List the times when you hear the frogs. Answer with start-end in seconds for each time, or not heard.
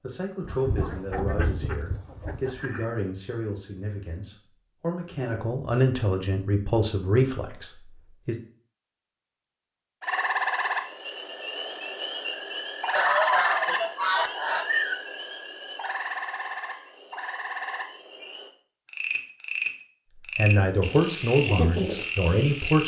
10.0-22.8.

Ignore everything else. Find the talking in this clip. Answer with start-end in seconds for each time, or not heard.
0.0-8.3, 20.1-22.8.